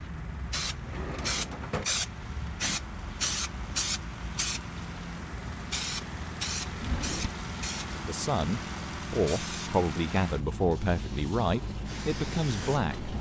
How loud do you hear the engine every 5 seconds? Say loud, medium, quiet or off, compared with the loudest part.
medium, loud, loud.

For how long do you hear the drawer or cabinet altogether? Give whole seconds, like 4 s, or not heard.
2 s.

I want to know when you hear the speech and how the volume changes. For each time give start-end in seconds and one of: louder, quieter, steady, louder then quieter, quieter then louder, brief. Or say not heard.
7.9-13.1 steady.